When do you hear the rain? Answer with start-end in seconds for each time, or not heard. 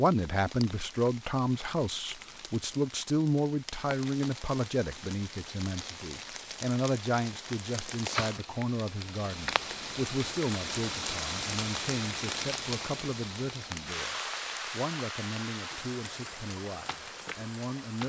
0.0-18.0.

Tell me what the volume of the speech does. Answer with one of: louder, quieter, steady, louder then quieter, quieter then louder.
quieter.